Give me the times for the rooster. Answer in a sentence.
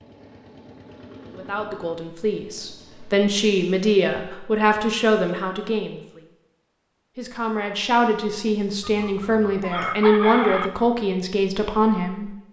You can hear the rooster from 8.8 to 10.7 s.